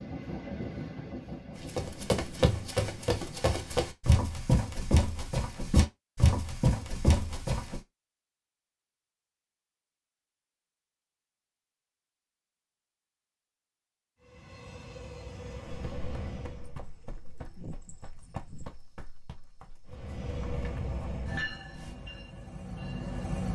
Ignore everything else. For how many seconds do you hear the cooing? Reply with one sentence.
The cooing can be heard for 2 seconds in total.